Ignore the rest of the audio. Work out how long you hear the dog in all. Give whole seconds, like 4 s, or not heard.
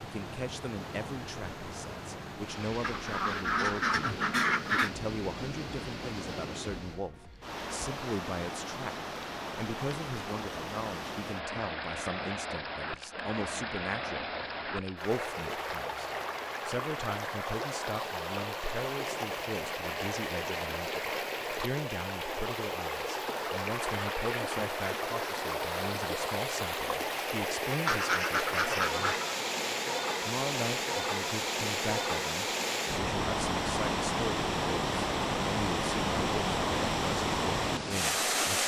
not heard.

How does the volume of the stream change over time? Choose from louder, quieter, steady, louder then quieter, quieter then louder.
louder.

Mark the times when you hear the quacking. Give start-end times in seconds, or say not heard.
2.8-4.9, 27.9-29.4.